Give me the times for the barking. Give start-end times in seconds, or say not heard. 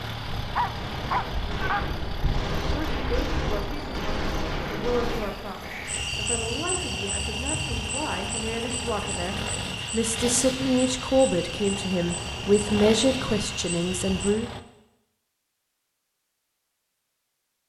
0.6-1.9.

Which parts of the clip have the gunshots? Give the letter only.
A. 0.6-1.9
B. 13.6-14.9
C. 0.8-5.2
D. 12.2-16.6
C.